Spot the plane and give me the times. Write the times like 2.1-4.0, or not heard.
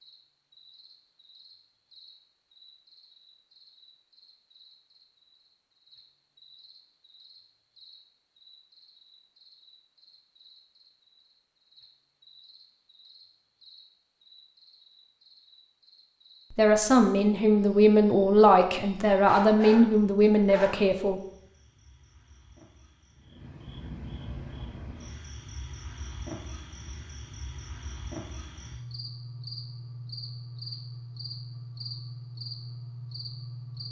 not heard.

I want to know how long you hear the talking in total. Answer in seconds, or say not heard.
5 s.